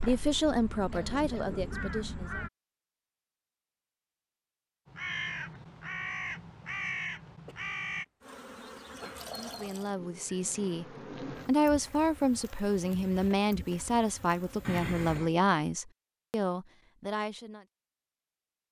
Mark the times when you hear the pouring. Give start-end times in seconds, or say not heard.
9.1-9.9.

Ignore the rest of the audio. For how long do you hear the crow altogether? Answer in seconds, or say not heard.
6 s.